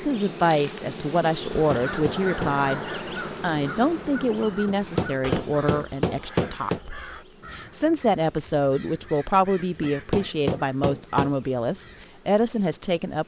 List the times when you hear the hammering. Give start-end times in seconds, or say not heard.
1.4-2.6, 4.5-6.8, 9.6-11.3.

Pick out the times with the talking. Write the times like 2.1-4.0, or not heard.
0.0-13.2.